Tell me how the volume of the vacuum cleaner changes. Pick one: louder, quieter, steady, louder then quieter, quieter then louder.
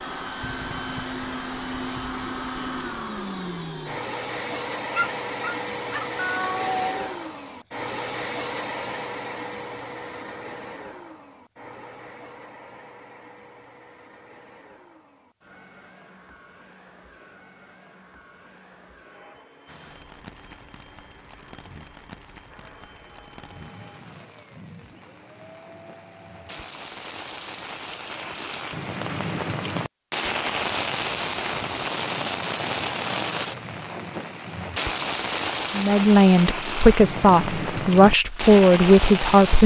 quieter.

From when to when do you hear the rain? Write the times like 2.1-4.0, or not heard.
19.6-39.6.